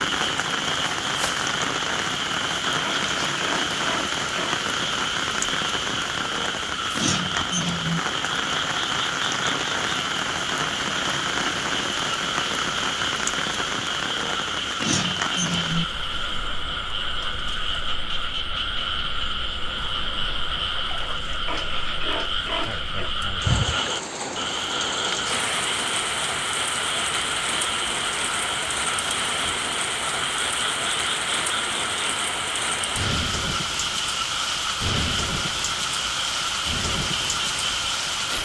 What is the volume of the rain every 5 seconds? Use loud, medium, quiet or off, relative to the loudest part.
loud, loud, loud, medium, medium, loud, loud, loud.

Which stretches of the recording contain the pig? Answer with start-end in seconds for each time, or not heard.
2.8-4.6, 21.4-23.1.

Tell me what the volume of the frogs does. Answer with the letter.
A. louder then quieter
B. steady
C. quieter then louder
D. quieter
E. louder
B.